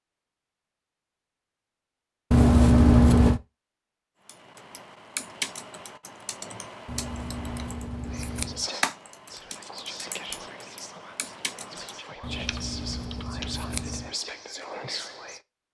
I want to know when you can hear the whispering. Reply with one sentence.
You can hear the whispering from 8.1 to 15.4 s.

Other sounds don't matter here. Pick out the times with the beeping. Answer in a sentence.
The beeping can't be heard in this clip.